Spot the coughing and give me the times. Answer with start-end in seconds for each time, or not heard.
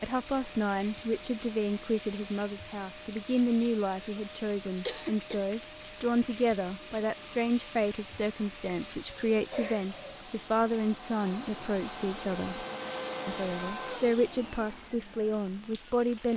4.8-5.5, 9.5-10.2.